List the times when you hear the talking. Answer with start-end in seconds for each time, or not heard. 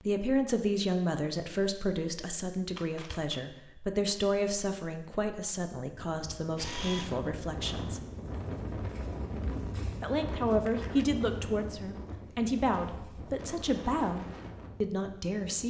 0.0-8.1, 10.0-15.6.